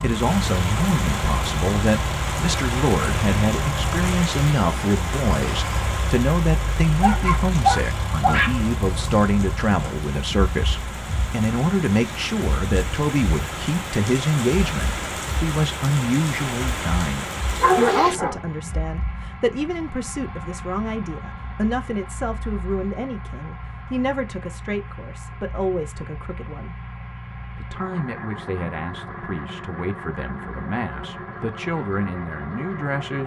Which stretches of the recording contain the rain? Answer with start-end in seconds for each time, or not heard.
0.0-18.2.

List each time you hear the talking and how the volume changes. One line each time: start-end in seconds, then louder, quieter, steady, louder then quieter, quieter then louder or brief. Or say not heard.
0.0-33.2 quieter.